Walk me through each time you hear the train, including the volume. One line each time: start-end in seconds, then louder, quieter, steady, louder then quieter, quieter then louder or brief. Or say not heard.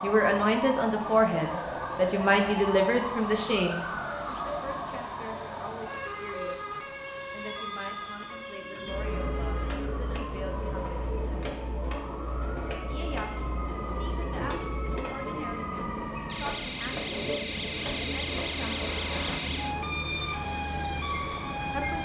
0.0-22.0 louder.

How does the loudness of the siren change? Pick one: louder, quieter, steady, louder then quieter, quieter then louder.
quieter then louder.